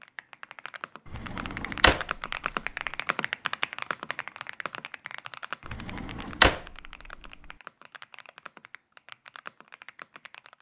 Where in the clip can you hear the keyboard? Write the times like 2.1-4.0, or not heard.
0.0-10.5.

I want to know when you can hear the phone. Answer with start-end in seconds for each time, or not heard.
not heard.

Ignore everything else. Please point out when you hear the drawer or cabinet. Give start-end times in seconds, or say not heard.
1.1-2.4, 5.7-7.3.